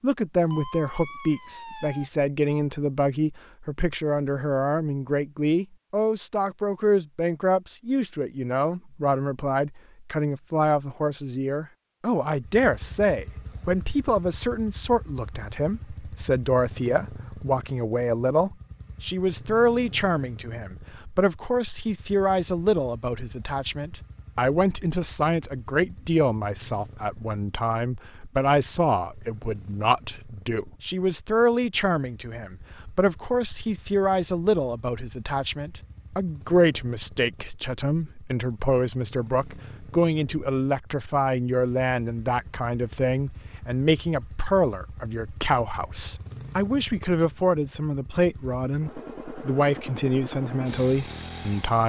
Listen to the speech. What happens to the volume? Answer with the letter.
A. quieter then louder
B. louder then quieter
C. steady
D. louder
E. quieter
C.